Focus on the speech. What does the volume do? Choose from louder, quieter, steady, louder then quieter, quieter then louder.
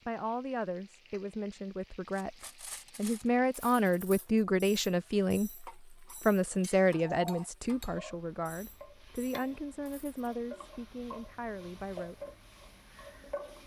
louder then quieter.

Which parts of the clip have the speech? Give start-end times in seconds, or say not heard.
0.1-12.3.